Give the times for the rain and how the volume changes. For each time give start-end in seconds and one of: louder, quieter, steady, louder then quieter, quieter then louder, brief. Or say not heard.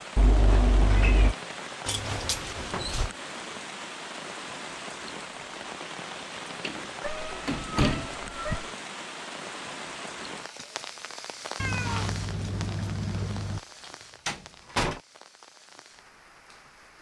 0.0-16.9 quieter.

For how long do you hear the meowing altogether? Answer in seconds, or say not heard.
5 s.